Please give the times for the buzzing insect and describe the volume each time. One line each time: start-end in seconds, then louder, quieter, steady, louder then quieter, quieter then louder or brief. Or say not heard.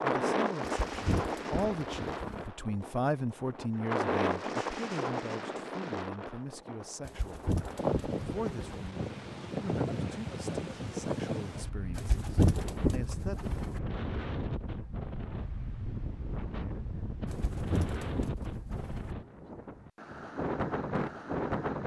not heard.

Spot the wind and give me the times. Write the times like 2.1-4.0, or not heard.
0.0-21.8.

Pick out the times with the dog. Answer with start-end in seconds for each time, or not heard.
not heard.